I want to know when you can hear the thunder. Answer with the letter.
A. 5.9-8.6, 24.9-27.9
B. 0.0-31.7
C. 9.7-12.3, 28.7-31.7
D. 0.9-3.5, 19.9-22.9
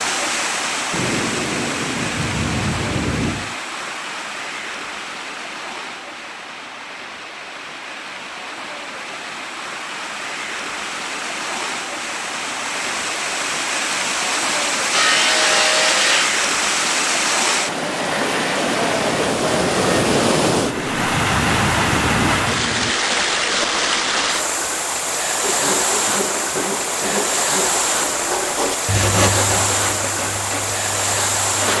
D.